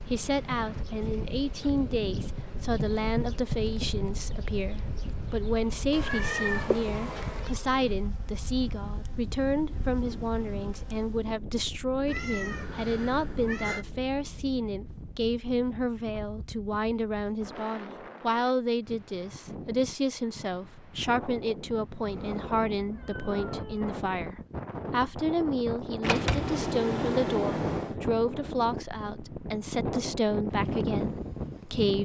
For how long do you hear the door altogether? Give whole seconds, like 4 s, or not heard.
2 s.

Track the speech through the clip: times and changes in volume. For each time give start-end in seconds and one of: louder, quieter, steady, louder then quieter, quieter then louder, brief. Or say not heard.
0.1-32.0 steady.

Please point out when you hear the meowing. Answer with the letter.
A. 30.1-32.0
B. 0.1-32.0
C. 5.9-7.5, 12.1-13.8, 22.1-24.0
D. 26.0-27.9
C.